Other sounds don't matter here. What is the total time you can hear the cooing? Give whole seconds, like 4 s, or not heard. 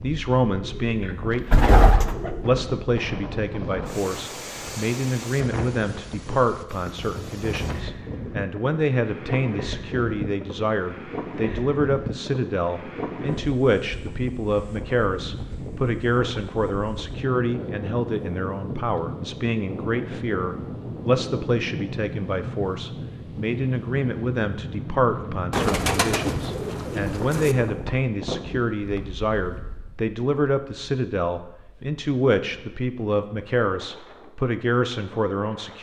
4 s.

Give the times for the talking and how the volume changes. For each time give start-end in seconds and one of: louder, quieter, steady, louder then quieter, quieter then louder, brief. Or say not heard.
0.0-35.7 steady.